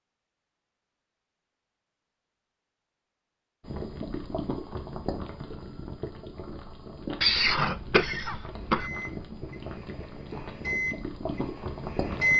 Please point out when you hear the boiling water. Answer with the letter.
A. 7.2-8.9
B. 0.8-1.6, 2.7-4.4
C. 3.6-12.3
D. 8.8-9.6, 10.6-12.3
C.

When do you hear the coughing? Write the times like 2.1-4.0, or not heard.
7.2-8.9.